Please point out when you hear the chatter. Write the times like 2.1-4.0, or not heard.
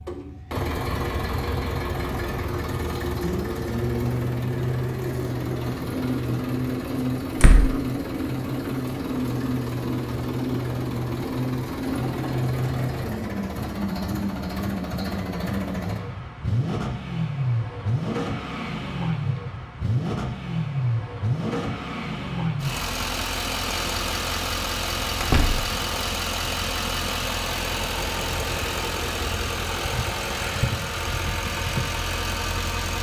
not heard.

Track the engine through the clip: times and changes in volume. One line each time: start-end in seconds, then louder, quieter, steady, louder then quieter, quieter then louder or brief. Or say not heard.
0.0-32.9 steady.